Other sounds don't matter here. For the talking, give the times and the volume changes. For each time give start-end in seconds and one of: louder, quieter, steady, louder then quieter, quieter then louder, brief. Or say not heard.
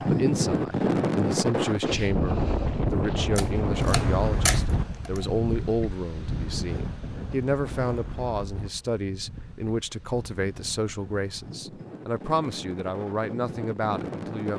0.0-14.5 steady.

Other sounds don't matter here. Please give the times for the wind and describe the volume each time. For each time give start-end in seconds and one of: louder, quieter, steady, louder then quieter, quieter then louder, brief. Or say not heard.
0.0-14.5 quieter then louder.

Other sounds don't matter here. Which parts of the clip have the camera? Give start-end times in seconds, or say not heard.
3.4-5.2.